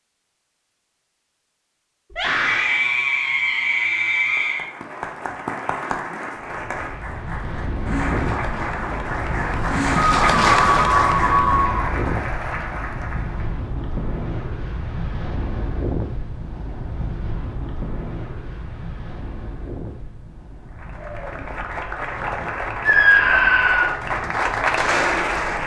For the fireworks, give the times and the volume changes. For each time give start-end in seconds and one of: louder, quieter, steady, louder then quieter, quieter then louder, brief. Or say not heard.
not heard.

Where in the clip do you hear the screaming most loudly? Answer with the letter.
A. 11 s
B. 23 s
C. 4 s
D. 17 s
B.